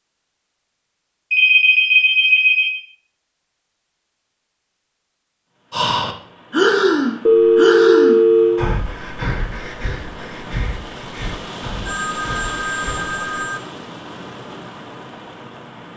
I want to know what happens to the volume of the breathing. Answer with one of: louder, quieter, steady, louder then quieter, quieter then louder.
quieter.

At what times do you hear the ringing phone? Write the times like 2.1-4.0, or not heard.
1.3-2.8, 7.2-8.7, 11.8-13.6.